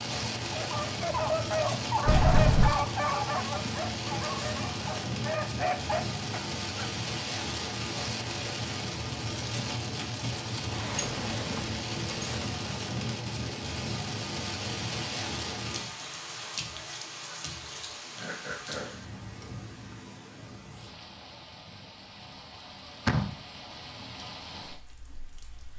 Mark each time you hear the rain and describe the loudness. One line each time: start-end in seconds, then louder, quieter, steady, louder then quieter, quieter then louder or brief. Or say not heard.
0.0-25.7 quieter.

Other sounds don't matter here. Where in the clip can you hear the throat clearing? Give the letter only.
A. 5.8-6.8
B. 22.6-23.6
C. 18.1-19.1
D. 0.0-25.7
C.